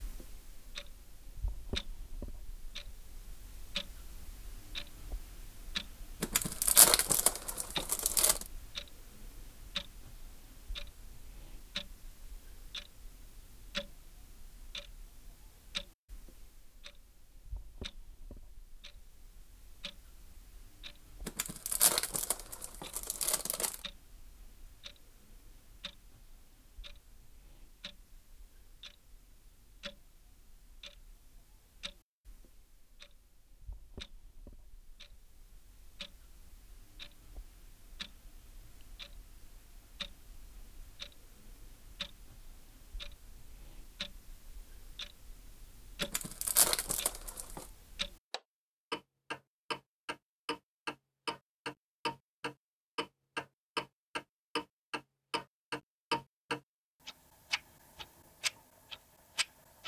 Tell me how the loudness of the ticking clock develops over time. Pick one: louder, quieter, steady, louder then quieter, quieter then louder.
quieter then louder.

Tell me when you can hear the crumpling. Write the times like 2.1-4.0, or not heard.
6.2-8.4, 21.2-23.8, 46.0-47.6.